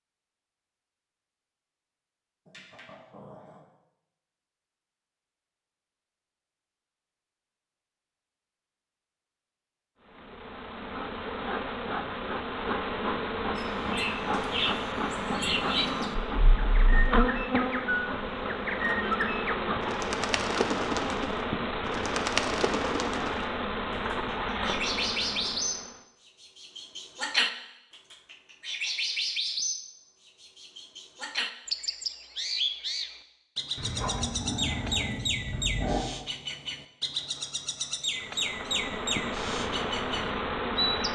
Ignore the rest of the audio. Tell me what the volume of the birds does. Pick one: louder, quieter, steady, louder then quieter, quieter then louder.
steady.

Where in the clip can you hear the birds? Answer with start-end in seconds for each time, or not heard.
13.6-41.0.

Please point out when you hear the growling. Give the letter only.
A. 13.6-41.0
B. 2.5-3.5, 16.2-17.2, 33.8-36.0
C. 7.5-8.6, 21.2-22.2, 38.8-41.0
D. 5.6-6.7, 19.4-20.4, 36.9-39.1
B.